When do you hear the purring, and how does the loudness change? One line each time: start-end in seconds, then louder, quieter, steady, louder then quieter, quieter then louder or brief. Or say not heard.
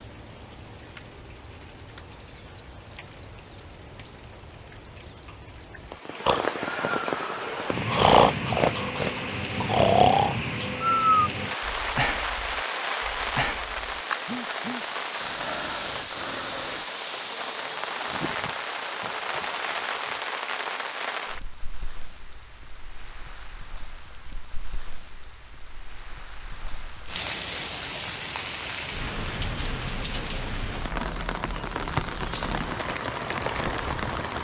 not heard.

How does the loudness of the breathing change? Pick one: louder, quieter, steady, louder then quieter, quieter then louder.
quieter.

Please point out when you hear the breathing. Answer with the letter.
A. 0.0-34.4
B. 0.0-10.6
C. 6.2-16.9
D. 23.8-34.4
C.